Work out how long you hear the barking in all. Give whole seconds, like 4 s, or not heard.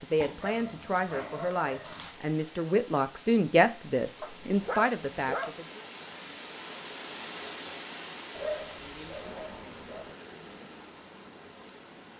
5 s.